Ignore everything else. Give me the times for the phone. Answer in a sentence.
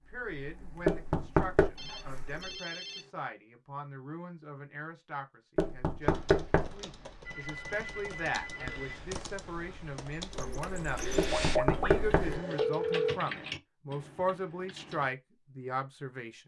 You can hear the phone from 1.8 to 3.1 s, from 7.2 to 9.2 s and from 11.3 to 13.2 s.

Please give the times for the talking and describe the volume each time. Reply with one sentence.
You can hear the talking from 0.1 to 16.4 s, getting louder.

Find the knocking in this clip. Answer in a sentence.
You can hear the knocking from 0.8 to 1.7 s, from 5.5 to 6.8 s and from 11.2 to 12.4 s.